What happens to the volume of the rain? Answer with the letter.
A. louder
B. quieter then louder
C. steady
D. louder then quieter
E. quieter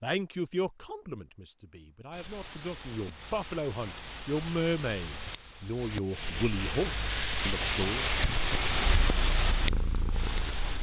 A.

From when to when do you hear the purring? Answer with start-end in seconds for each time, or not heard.
8.8-10.7.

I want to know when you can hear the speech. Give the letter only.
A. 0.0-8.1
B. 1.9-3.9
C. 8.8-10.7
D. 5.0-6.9
A.